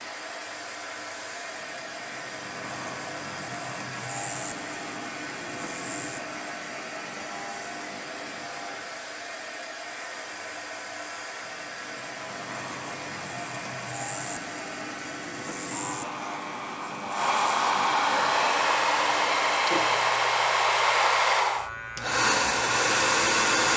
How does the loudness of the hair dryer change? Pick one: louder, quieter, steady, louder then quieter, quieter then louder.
louder.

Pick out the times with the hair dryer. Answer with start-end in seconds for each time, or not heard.
0.0-23.7.